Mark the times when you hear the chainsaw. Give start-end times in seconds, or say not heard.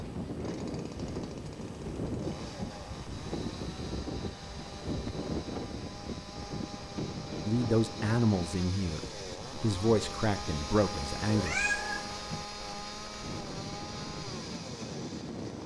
0.0-15.6.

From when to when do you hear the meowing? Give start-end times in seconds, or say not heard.
11.2-12.2.